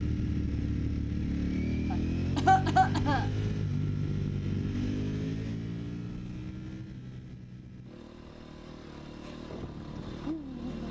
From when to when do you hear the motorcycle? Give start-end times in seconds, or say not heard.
0.0-10.8.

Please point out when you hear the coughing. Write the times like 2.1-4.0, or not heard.
1.9-3.3.